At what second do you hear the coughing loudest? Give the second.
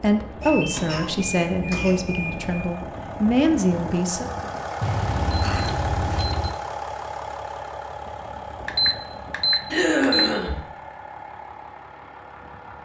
10 s.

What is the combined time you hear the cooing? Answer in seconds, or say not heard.
not heard.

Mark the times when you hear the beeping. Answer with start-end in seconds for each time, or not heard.
0.4-2.6, 4.8-6.5, 8.7-10.3.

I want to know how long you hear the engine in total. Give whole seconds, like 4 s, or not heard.
13 s.